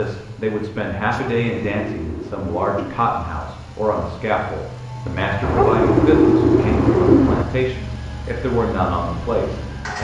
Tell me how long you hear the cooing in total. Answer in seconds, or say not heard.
4 s.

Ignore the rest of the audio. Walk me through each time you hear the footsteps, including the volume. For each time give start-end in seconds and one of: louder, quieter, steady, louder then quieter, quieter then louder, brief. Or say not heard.
not heard.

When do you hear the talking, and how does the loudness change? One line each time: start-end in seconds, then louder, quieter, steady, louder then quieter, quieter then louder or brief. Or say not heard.
0.0-10.0 steady.